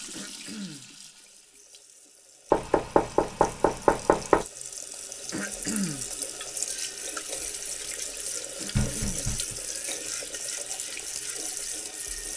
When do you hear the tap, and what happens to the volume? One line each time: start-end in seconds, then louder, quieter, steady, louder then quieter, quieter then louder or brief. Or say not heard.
0.0-12.3 louder.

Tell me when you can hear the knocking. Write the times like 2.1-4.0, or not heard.
2.5-4.5, 8.8-9.6.